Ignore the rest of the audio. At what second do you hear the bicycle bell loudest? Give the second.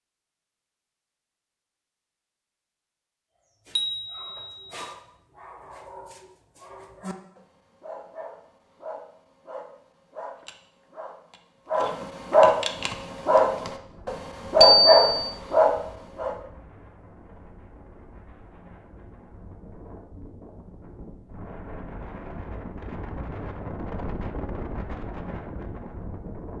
15 s.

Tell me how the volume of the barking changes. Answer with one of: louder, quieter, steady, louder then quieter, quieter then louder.
louder.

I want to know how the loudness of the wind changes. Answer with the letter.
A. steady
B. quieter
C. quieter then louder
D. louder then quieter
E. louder
E.